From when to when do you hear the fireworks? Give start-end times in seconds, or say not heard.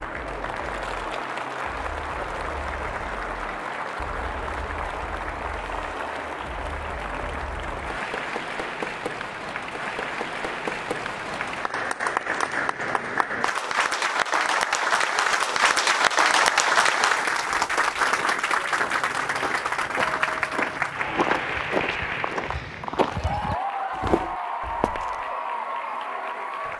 not heard.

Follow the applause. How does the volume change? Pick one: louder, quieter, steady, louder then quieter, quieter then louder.
louder then quieter.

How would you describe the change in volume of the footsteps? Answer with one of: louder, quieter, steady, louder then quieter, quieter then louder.
louder.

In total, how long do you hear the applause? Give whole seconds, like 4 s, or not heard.
27 s.